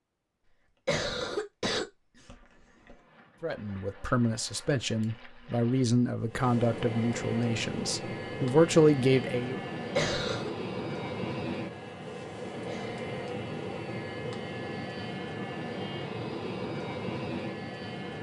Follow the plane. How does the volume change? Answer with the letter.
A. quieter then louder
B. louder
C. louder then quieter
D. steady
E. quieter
B.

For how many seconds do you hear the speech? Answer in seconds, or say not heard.
6 s.